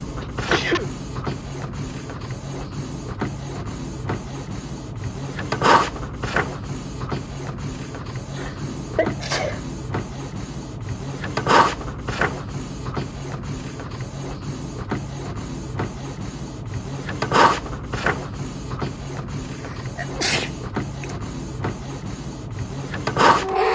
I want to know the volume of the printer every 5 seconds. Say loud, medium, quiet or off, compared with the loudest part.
medium, loud, loud, loud, loud.